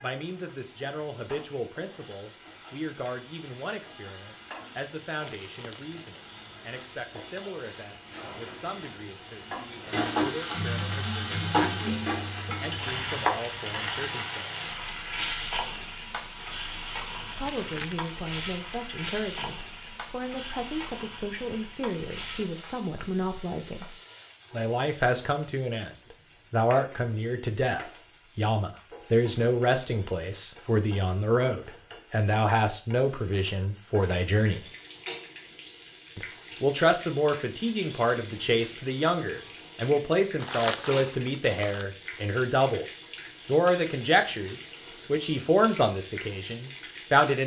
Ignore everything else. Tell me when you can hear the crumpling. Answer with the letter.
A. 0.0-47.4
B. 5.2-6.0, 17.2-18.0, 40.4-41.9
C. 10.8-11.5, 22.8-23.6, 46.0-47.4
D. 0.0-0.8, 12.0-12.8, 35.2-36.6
B.